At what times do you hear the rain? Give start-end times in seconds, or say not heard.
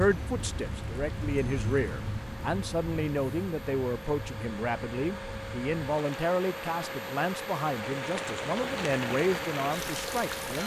0.0-10.6.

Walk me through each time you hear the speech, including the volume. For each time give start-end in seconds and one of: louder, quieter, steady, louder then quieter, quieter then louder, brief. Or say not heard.
0.0-10.6 steady.